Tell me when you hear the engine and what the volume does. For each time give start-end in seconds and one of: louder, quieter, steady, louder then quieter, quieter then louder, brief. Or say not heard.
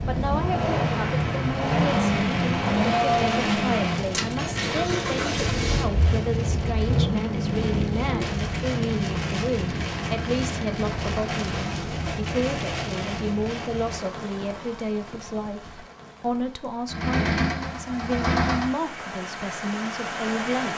0.1-11.9 quieter
16.9-18.8 brief.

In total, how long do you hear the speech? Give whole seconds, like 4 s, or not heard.
21 s.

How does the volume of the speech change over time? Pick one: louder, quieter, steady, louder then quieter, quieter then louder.
steady.